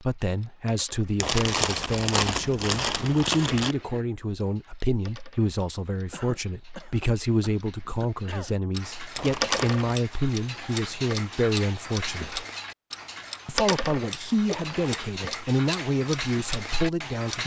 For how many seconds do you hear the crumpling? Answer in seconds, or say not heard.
4 s.